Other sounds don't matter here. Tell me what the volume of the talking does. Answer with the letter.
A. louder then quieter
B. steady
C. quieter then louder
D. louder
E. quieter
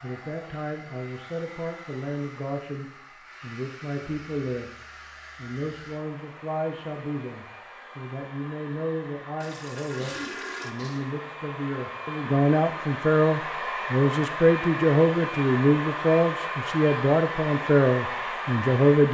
D.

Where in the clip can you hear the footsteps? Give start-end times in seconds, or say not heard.
not heard.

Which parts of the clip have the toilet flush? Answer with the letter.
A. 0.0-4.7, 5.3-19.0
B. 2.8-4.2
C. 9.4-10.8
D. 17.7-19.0
C.